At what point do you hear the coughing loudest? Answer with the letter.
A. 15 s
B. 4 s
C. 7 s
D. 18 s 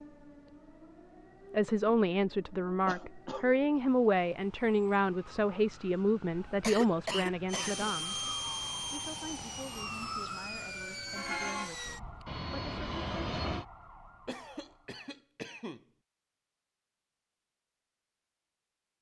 C.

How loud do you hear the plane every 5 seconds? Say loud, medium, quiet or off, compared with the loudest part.
off, loud, loud, off.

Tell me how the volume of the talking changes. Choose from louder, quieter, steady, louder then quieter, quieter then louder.
quieter.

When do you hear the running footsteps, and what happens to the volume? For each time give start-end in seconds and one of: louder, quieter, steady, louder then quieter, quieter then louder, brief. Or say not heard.
not heard.